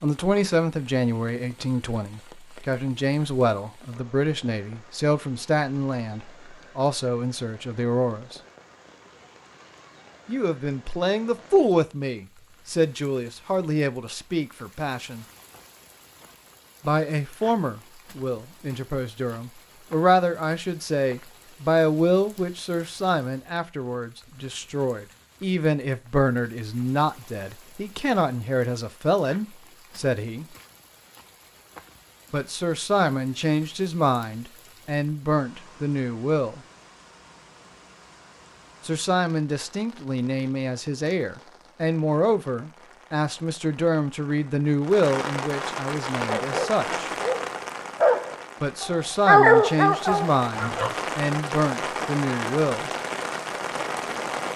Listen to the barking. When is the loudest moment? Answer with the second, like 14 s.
49 s.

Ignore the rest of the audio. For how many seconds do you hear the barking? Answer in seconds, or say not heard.
5 s.